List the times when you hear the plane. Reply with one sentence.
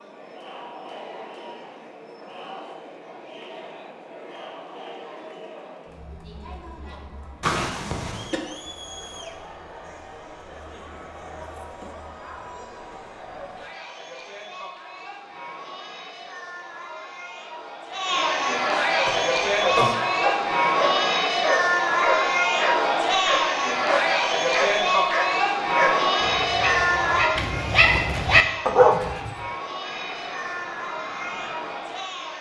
You can hear the plane from 29.8 to 32.1 s.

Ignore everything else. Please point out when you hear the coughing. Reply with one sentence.
The coughing can be heard from 7.4 to 8.4 s and from 19.1 to 19.9 s.